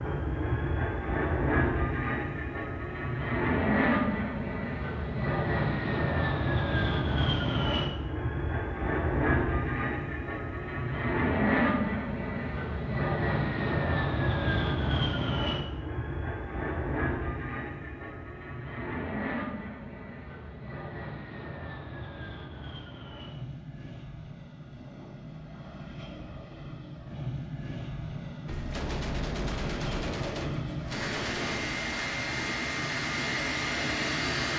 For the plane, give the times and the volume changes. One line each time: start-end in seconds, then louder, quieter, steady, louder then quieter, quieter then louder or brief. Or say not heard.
0.0-34.5 quieter then louder.